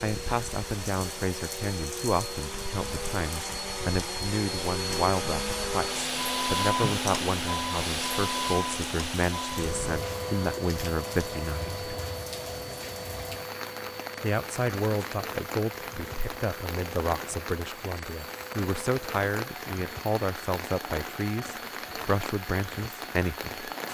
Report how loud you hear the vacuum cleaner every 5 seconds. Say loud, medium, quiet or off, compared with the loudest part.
medium, loud, medium, quiet, quiet.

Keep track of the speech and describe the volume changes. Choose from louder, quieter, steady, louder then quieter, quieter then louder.
steady.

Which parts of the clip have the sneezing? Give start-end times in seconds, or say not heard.
not heard.